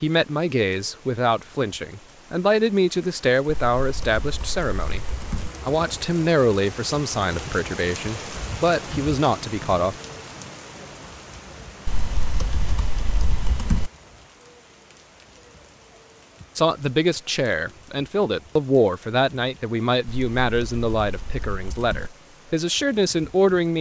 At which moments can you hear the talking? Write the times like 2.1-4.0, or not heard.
0.0-5.0, 5.7-10.0, 16.6-23.7.